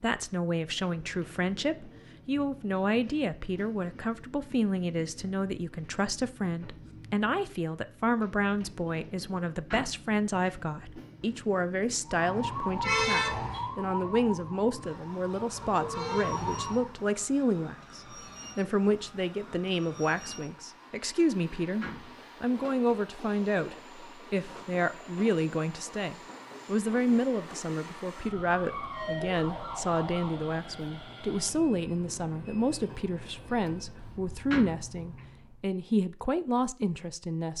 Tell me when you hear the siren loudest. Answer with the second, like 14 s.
13 s.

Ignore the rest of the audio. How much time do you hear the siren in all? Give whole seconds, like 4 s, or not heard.
7 s.